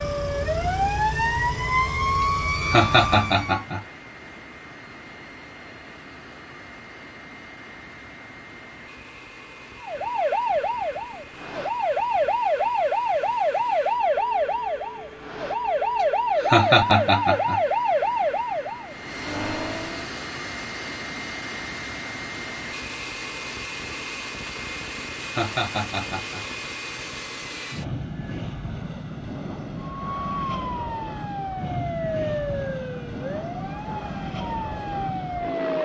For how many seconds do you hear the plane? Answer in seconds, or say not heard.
36 s.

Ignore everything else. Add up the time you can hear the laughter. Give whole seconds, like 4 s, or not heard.
4 s.